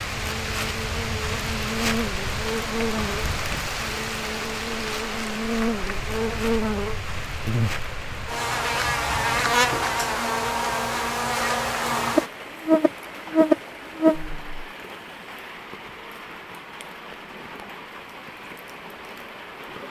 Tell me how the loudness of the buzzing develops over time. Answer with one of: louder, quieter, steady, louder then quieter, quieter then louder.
louder.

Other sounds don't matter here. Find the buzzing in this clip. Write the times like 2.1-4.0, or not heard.
0.0-14.7.